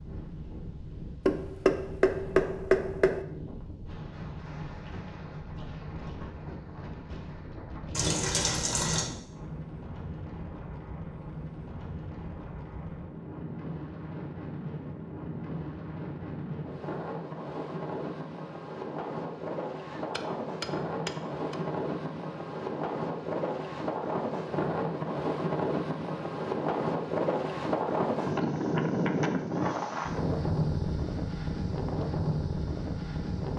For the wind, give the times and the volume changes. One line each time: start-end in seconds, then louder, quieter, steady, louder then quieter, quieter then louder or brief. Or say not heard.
0.0-33.5 louder.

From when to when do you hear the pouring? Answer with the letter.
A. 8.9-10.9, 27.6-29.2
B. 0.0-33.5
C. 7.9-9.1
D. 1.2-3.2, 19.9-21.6
C.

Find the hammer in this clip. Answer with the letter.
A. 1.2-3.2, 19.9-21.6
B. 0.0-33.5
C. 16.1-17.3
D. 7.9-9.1
A.